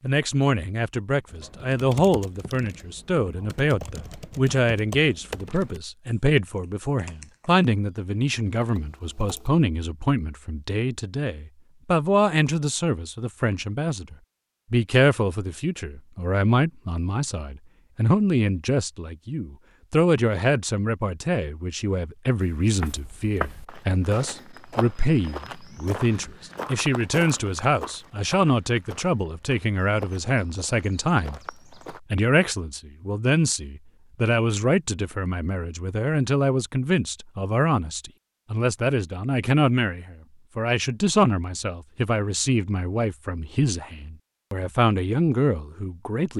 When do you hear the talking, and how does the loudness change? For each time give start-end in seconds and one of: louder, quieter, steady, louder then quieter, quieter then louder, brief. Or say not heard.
0.0-46.3 steady.